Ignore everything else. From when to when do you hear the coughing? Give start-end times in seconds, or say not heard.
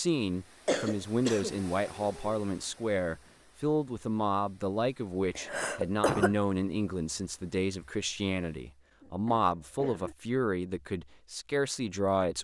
0.7-2.4, 5.3-6.3, 9.0-10.2.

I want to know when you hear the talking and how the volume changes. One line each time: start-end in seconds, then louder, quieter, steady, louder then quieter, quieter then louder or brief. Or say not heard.
0.0-12.3 steady.